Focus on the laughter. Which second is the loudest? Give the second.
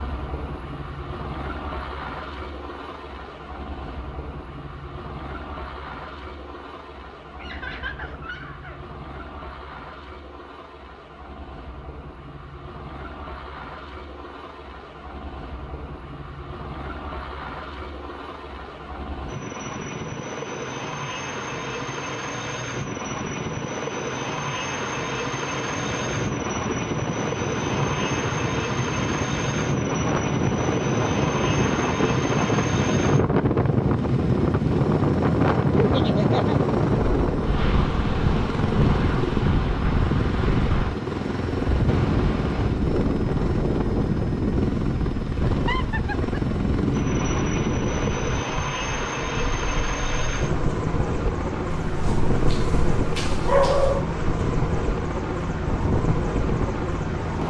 36 s.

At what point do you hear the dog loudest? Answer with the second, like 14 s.
54 s.